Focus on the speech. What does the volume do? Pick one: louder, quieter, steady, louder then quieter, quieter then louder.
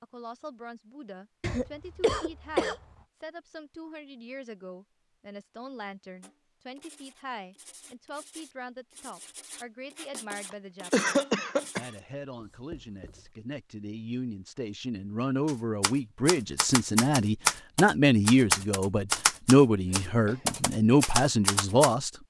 louder.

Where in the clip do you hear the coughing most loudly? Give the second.
11 s.